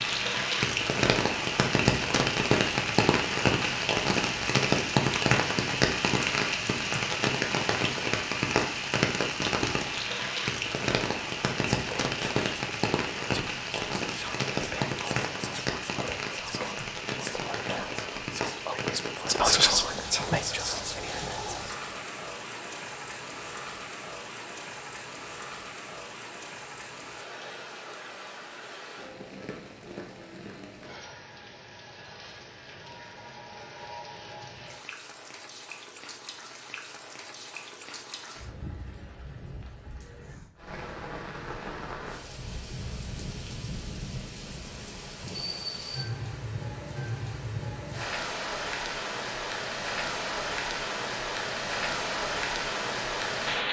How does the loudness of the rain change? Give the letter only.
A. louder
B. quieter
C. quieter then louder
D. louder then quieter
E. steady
C.